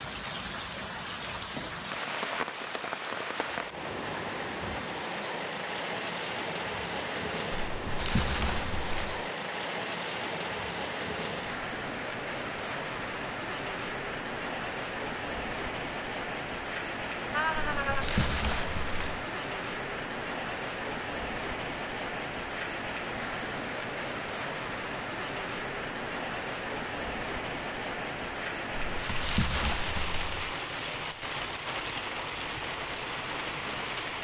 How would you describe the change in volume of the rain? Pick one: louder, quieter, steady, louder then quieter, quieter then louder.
steady.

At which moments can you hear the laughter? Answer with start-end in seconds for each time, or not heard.
17.3-18.1.